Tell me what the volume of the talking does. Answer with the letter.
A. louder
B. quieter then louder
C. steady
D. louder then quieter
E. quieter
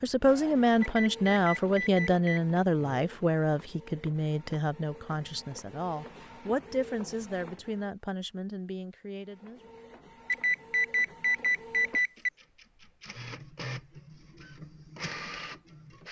E.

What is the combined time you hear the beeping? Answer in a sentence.
The beeping can be heard for 4 seconds in total.